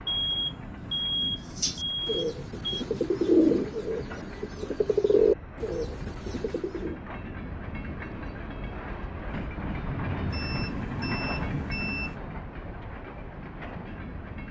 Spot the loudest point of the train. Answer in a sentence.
The volume of the train peaks at 11 seconds.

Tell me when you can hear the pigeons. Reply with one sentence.
You can hear the pigeons from 1.6 to 7.0 s.